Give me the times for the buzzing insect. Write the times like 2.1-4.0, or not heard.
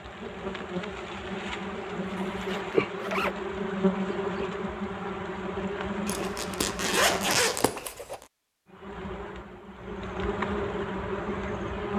0.0-7.5, 8.7-11.9.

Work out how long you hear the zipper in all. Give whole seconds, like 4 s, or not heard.
3 s.